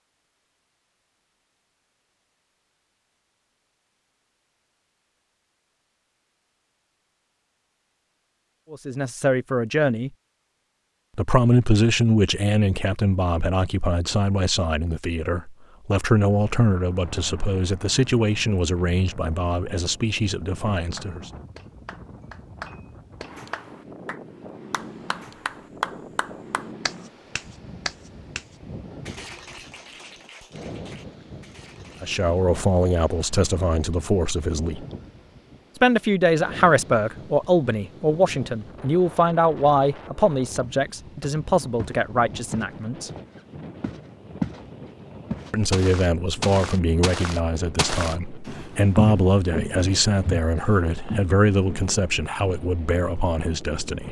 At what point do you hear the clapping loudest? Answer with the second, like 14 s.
26 s.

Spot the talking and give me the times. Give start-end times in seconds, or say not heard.
8.7-10.1, 11.2-21.3, 32.0-34.9, 35.8-43.1, 45.5-54.0.